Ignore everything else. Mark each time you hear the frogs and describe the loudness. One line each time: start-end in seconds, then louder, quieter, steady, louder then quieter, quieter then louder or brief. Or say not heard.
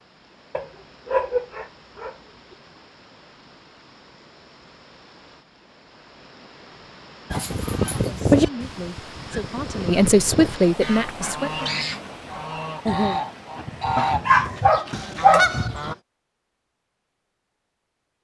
not heard.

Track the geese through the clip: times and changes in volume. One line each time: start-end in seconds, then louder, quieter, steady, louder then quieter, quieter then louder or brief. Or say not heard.
7.3-15.9 quieter then louder.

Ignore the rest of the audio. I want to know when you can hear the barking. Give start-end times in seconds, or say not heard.
0.6-2.1, 7.3-8.4, 13.9-15.9.